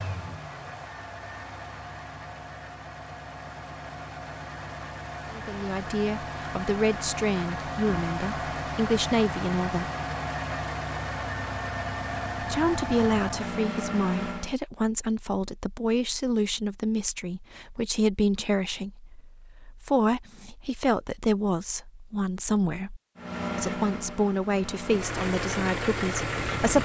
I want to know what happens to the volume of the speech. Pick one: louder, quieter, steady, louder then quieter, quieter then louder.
steady.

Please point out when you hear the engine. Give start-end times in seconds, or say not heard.
0.0-14.6, 23.1-26.8.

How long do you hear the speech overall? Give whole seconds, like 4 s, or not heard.
19 s.